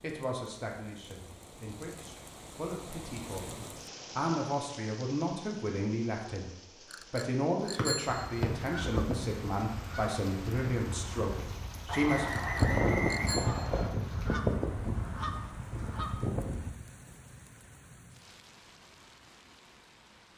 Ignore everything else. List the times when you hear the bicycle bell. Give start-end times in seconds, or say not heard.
6.9-8.2, 12.3-13.8.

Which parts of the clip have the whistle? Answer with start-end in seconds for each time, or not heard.
7.8-8.5, 11.8-13.9.